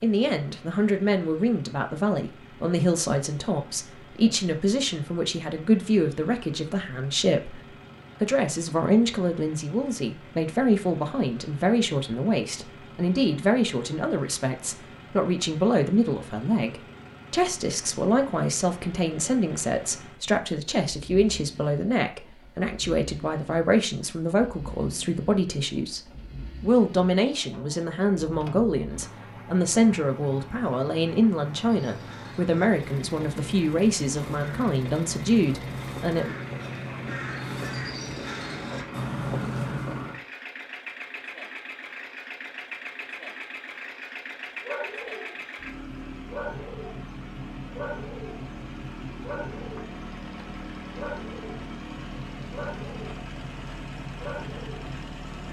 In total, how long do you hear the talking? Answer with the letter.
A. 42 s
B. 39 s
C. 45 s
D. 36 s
D.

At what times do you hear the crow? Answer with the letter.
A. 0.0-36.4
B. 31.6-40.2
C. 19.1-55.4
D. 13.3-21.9
B.